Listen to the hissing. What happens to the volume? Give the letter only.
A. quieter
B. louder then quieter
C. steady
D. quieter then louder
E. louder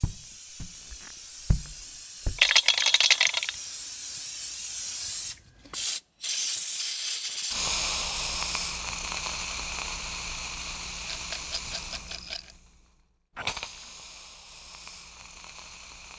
B.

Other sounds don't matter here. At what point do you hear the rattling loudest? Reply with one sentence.
The loudest moment of the rattling is at 3 seconds.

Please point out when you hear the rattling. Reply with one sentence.
The rattling can be heard from 2.4 to 3.5 s and from 11.1 to 12.6 s.